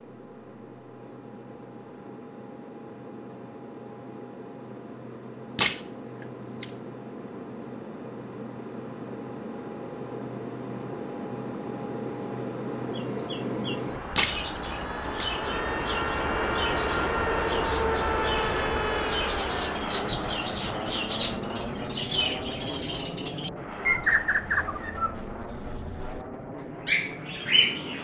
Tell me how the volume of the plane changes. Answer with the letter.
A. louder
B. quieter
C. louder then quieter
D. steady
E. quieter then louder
C.